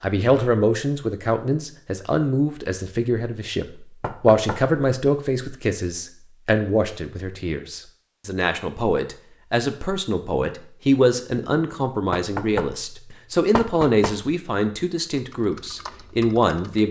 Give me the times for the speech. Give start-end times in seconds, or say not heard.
0.0-16.8.